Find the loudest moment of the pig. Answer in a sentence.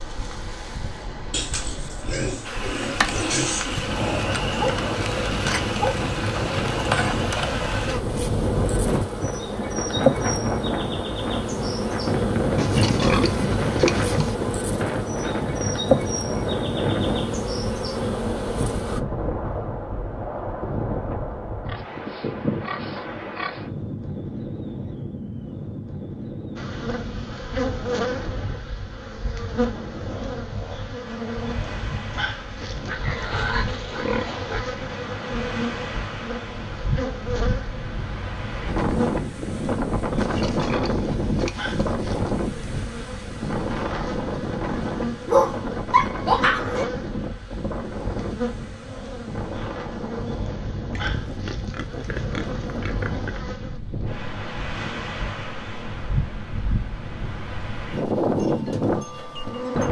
The volume of the pig peaks at 13 seconds.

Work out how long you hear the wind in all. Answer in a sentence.
The wind can be heard for 60 seconds in total.